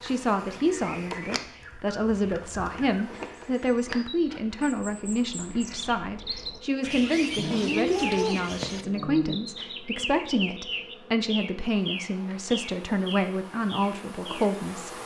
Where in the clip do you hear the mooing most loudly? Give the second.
8 s.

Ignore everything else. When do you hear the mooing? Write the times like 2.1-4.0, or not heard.
7.3-9.4.